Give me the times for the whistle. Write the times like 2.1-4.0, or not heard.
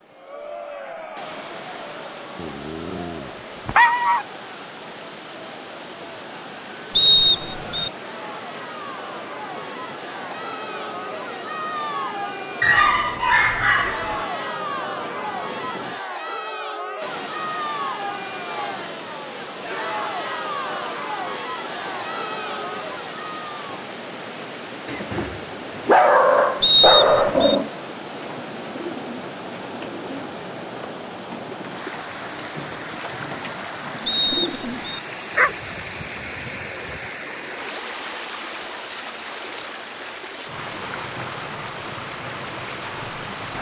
7.0-7.9, 26.6-27.6, 34.0-35.0.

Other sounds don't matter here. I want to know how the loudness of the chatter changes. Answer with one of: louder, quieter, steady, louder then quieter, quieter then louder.
louder.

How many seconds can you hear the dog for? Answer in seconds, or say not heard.
8 s.